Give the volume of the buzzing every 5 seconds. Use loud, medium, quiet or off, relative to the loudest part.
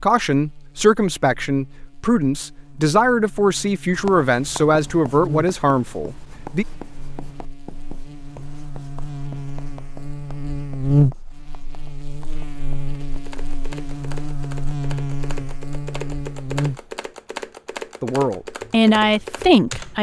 quiet, medium, loud, loud.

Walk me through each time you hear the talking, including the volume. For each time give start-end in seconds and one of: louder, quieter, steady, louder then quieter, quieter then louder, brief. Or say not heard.
0.0-6.7 steady
18.0-19.9 brief.